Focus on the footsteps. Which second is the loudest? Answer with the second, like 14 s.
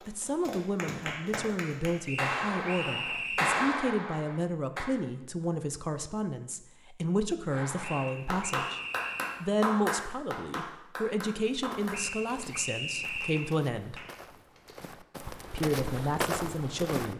16 s.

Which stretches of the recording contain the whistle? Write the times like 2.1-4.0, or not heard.
2.0-3.6, 7.8-9.4, 11.9-13.6.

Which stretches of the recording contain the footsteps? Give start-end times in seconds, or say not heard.
11.4-17.1.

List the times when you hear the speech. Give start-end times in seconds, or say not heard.
0.1-8.8, 9.4-13.9, 15.5-17.1.